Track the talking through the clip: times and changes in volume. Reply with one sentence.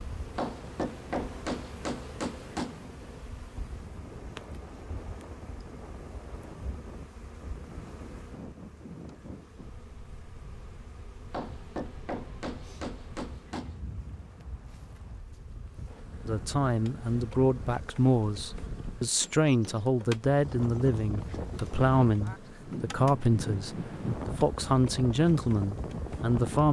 You can hear the talking from 16.2 to 26.6 s, at a steady volume.